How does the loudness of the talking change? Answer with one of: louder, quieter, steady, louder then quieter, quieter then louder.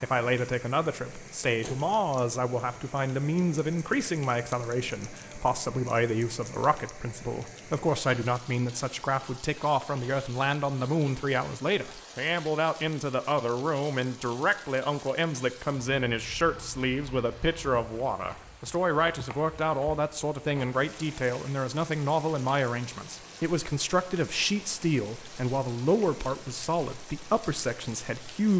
steady.